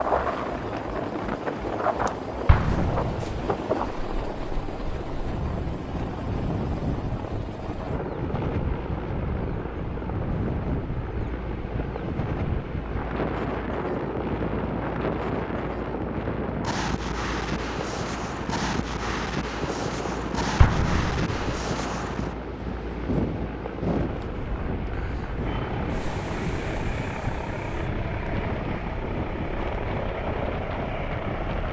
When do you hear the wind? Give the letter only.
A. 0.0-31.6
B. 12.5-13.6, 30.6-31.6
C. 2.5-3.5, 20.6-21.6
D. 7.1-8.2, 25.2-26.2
A.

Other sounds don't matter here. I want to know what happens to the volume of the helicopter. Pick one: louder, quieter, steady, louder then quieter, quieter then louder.
steady.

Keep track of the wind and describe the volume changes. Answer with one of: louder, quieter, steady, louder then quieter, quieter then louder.
steady.